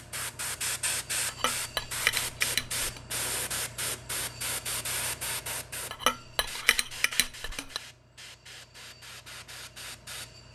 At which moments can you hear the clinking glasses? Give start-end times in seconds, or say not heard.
1.2-3.0, 5.9-7.8.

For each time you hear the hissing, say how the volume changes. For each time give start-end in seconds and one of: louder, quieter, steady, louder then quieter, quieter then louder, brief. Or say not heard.
0.0-10.5 quieter.